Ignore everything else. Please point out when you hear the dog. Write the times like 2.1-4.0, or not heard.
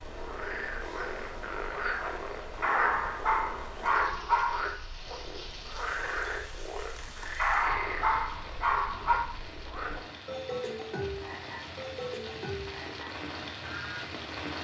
2.6-4.7, 7.3-9.2.